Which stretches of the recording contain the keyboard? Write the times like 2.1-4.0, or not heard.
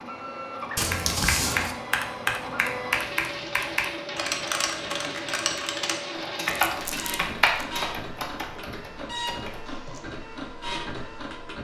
0.9-10.1.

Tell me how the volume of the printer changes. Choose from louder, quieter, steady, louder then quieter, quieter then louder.
steady.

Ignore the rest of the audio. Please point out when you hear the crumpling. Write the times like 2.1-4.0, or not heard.
0.8-1.8, 6.7-7.7.